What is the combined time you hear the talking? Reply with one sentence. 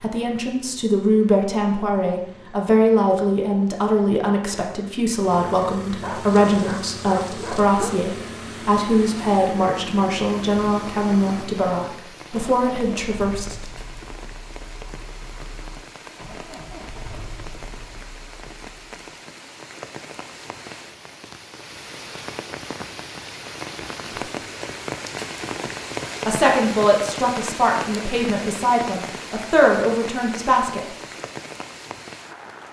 You can hear the talking for 18 seconds altogether.